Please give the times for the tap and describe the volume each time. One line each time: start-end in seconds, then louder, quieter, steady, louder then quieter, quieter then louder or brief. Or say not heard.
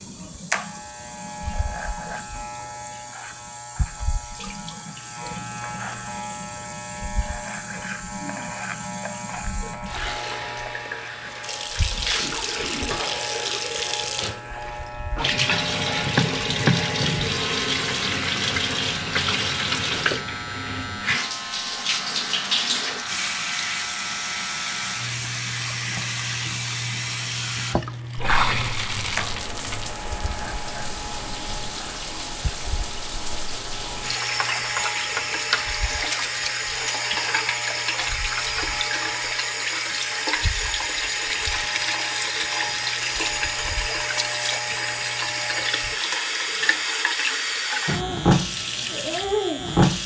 0.0-50.0 louder.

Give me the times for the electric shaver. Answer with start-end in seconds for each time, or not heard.
0.0-50.0.